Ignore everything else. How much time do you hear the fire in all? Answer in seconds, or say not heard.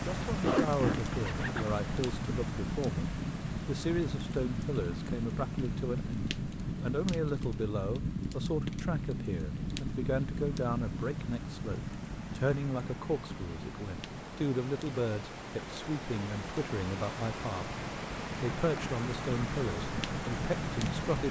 21 s.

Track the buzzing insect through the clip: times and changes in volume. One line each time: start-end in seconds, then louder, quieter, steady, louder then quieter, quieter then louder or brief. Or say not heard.
not heard.